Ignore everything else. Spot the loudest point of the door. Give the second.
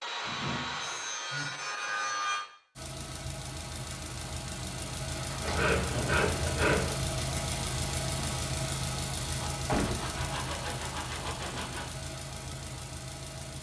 10 s.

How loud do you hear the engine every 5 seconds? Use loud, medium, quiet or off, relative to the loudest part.
medium, loud, medium.